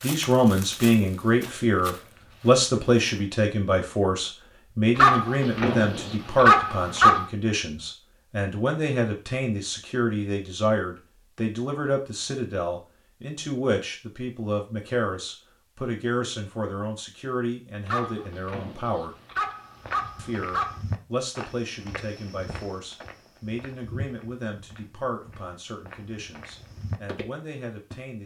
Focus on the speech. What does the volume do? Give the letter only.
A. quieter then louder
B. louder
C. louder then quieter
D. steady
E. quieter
E.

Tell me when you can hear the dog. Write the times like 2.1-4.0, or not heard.
5.0-7.2, 17.9-20.8.